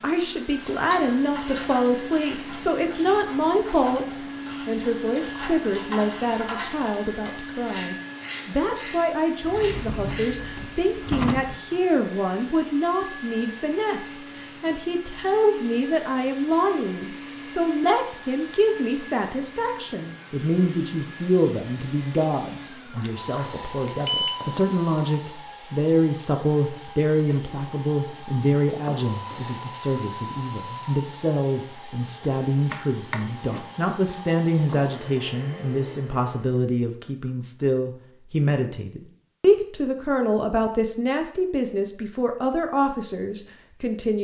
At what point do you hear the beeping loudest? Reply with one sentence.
The volume of the beeping peaks at 24 seconds.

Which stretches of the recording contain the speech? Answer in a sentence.
The speech can be heard from 0.0 to 44.1 s.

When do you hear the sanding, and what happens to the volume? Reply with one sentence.
You can't hear the sanding here.